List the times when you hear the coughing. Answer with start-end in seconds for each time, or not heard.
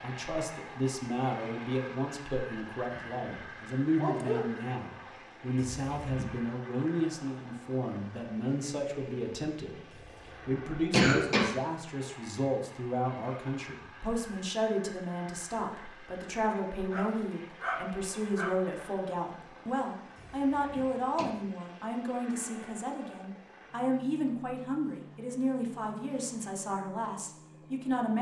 5.8-6.4, 9.9-11.6, 20.1-21.2.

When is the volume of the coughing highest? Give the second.
11 s.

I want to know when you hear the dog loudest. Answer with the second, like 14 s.
4 s.